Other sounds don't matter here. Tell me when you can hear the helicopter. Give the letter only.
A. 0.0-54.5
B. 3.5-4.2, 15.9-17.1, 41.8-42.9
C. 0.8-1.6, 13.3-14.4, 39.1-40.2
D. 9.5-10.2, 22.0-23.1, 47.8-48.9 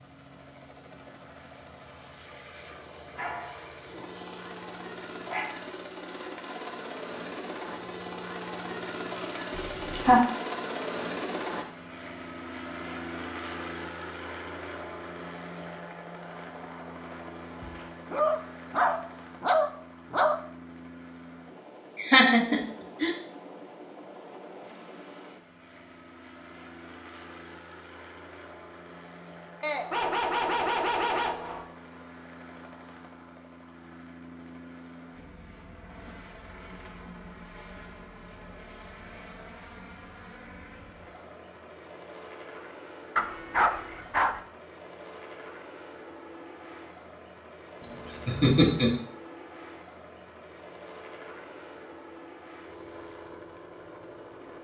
A.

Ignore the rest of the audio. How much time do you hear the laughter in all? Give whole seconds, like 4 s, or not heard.
3 s.